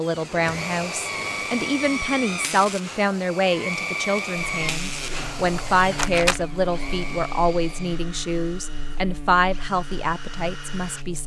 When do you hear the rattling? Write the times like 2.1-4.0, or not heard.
5.3-6.5.